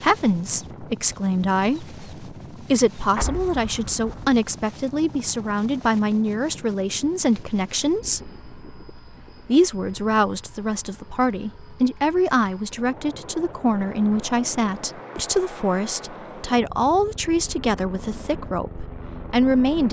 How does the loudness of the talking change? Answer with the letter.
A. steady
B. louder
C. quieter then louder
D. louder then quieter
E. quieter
A.